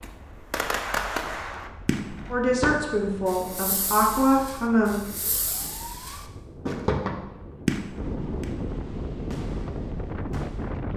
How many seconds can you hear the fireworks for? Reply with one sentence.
The fireworks can be heard for 11 seconds in total.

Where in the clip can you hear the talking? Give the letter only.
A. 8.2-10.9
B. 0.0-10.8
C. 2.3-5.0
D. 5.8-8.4
C.